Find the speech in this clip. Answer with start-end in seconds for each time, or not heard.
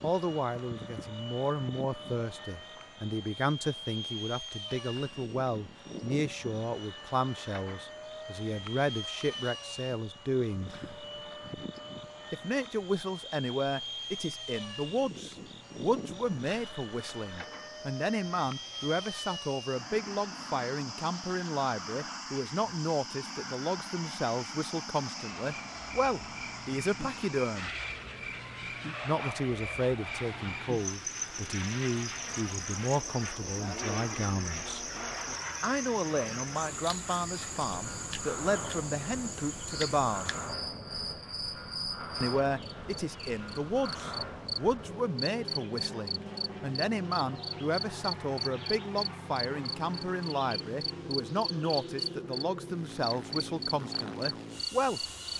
0.0-10.7, 12.3-27.7, 29.0-34.9, 35.6-40.3, 42.2-55.0.